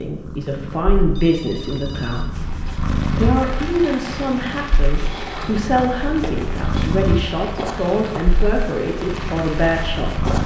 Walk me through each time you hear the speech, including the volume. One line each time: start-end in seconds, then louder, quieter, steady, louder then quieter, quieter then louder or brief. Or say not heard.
0.0-2.5 brief
3.1-10.3 steady.